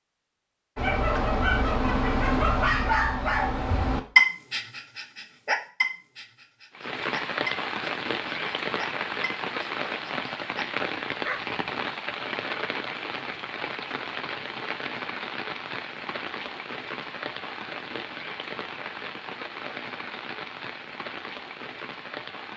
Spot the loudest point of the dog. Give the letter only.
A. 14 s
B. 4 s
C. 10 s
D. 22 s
B.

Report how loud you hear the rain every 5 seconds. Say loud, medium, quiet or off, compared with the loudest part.
off, loud, loud, medium, medium.